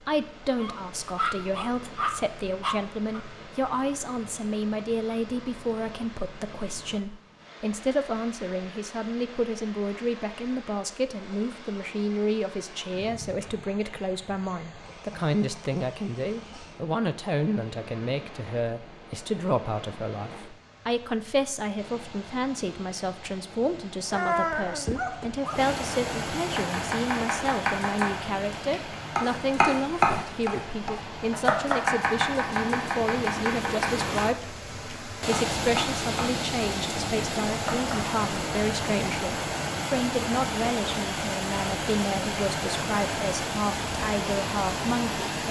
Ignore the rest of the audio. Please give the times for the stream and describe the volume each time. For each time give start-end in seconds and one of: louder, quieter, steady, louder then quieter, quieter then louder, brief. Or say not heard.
0.0-45.4 louder.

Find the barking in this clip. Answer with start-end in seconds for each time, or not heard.
0.5-3.2, 24.1-25.7.